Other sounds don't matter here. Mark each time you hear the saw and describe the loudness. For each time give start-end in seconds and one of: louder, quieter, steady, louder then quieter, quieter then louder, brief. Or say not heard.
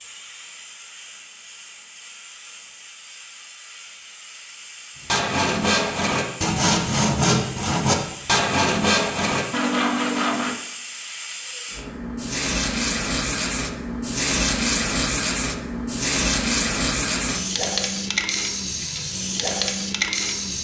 5.0-10.6 steady.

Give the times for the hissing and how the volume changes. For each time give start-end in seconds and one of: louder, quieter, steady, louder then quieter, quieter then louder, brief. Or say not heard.
0.0-20.5 louder.